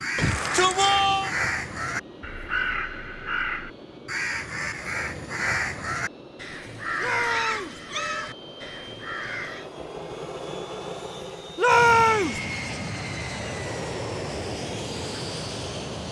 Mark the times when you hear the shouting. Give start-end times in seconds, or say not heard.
0.1-1.3, 7.0-7.8, 11.6-12.4.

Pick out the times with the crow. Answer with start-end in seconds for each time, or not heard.
0.0-9.7.